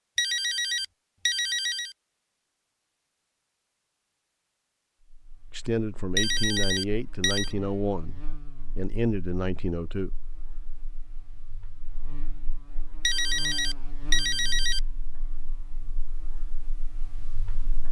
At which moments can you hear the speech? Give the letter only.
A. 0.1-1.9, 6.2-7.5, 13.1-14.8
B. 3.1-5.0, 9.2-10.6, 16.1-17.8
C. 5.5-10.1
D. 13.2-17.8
C.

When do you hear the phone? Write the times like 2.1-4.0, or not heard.
0.1-1.9, 6.2-7.5, 13.1-14.8.